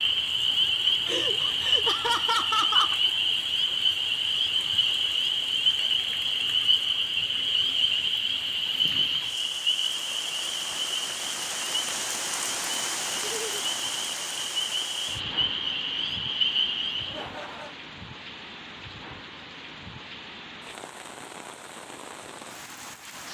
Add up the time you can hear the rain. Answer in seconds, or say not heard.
23 s.